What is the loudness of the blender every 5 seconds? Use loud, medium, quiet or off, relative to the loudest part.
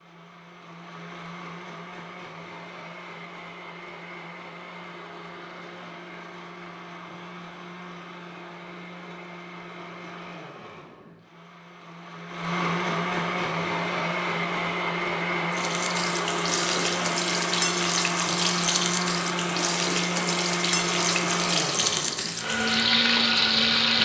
quiet, quiet, loud, loud, loud.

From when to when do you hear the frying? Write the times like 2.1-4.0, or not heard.
15.5-24.0.